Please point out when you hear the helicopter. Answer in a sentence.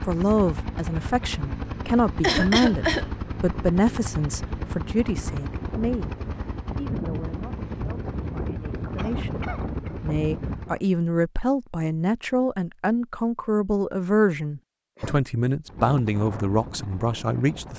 You can hear the helicopter from 0.0 to 10.8 s and from 15.7 to 17.7 s.